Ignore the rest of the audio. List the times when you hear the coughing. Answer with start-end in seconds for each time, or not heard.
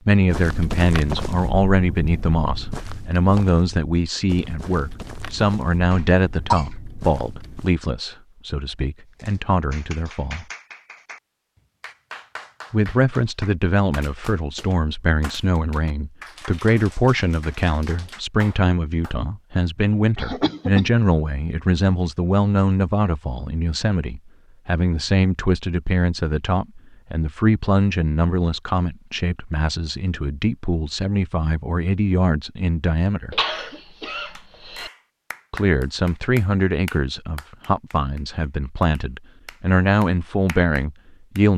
5.9-6.7, 20.1-20.9, 33.3-34.9.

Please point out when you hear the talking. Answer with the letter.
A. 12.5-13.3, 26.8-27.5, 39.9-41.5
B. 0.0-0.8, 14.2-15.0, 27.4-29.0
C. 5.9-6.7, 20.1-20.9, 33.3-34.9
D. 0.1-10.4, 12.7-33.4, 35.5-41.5
D.